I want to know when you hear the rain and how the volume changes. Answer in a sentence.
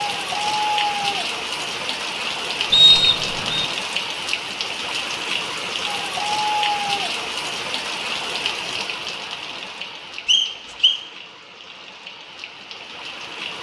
The rain can be heard from 0.0 to 13.5 s, getting quieter.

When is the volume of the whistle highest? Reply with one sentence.
The loudest moment of the whistle is at 3 seconds.